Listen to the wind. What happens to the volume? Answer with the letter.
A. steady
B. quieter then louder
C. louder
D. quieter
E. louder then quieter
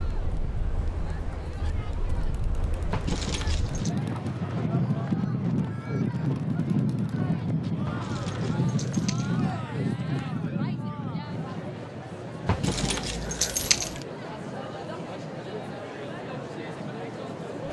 E.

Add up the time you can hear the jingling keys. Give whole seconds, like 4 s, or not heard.
4 s.